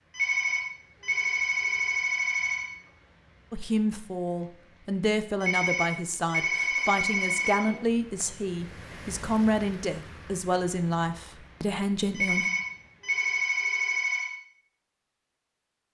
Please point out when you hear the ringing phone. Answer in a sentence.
You can hear the ringing phone from 0.1 to 2.7 s, from 5.4 to 7.7 s and from 12.2 to 14.3 s.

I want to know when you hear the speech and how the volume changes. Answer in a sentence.
You can hear the speech from 3.5 to 12.5 s, at a steady volume.